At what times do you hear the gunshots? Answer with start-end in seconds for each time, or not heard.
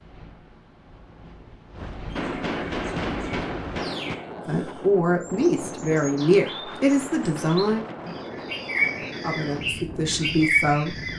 2.1-4.2.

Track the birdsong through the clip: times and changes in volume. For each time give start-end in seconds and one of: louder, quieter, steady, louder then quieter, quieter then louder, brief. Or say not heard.
2.0-11.1 quieter then louder.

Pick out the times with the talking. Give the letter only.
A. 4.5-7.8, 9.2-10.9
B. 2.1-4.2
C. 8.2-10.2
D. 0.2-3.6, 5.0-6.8
A.